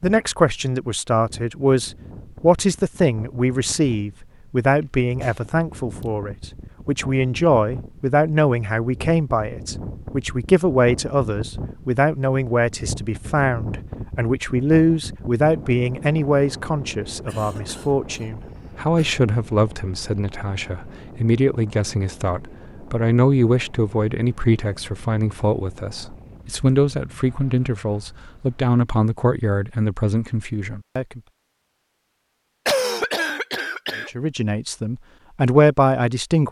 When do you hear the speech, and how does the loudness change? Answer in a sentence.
The speech can be heard from 0.0 to 31.2 s, at a steady volume; and briefly from 34.0 to 36.4 s.